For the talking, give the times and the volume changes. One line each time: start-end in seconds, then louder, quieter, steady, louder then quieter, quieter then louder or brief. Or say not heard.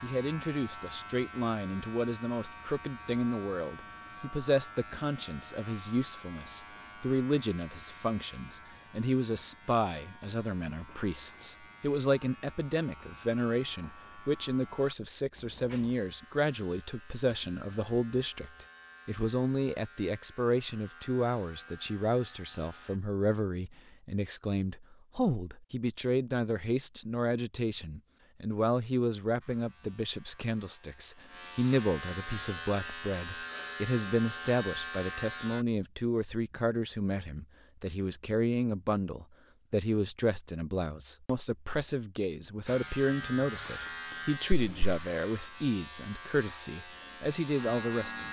0.0-48.2 steady.